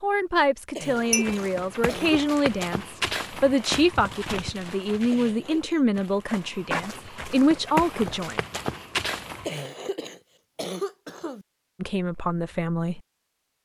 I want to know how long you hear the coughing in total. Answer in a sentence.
The coughing can be heard for 4 seconds in total.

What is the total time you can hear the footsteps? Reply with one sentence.
You can hear the footsteps for 9 seconds altogether.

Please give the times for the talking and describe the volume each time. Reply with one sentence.
You can hear the talking from 0.0 to 8.4 s, at a steady volume; and briefly from 11.8 to 13.0 s.